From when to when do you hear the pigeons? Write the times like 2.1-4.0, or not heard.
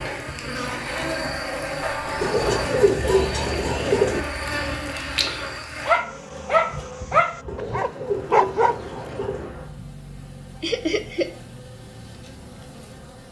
2.2-4.2, 7.5-9.5.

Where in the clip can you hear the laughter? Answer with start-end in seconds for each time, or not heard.
1.8-2.7, 10.6-11.3.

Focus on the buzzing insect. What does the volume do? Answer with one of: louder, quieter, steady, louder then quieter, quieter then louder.
quieter.